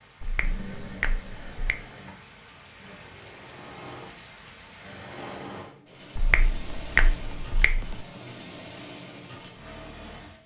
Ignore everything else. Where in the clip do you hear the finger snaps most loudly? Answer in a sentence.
The loudest moment of the finger snaps is at 7 seconds.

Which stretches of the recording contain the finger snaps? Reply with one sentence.
The finger snaps can be heard from 0.2 to 1.8 s and from 6.2 to 8.0 s.